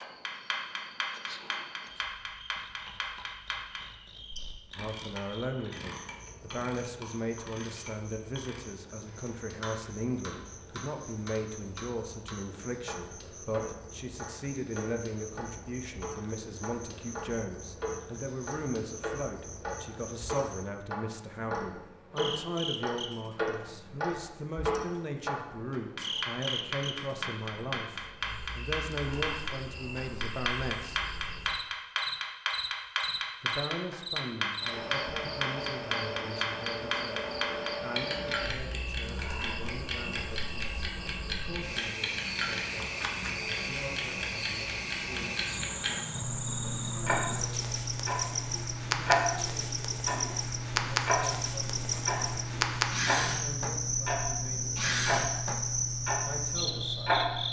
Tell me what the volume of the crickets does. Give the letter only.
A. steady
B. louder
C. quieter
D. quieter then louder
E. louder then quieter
B.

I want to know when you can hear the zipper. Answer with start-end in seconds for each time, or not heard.
not heard.